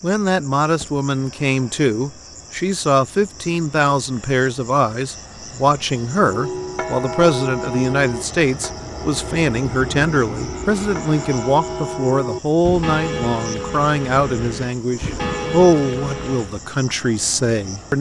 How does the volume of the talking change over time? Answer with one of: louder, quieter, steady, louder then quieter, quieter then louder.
steady.